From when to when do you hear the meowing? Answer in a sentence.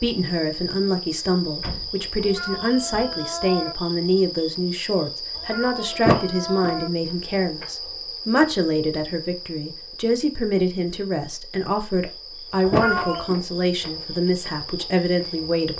You can hear the meowing from 2.2 to 3.8 s, from 5.3 to 6.9 s and from 12.7 to 13.3 s.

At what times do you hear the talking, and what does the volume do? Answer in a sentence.
You can hear the talking from 0.0 to 15.7 s, at a steady volume.